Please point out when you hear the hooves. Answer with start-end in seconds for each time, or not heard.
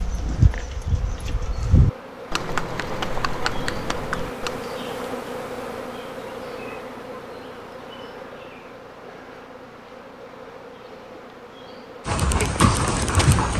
0.0-4.7, 12.1-13.5.